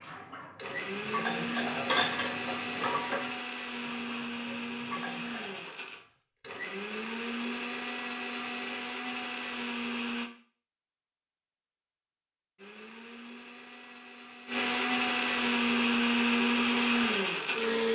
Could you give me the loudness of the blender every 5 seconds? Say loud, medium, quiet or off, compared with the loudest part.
medium, medium, medium, loud.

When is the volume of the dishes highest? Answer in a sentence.
The volume of the dishes peaks at 2 seconds.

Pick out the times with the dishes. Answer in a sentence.
The dishes can be heard from 0.0 to 5.8 s.